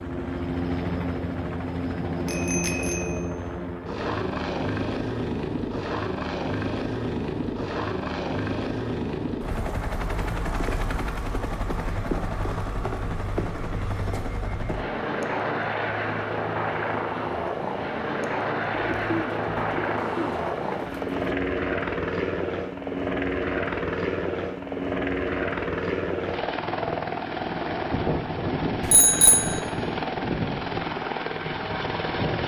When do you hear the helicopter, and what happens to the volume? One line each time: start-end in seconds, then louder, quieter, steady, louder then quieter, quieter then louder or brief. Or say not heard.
0.0-32.4 steady.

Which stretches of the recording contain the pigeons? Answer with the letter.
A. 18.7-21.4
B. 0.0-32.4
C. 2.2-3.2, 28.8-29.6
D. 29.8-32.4
A.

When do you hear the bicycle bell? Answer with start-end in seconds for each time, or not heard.
2.2-3.2, 28.8-29.6.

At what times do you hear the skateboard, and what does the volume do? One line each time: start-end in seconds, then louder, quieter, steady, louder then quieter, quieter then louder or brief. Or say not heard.
not heard.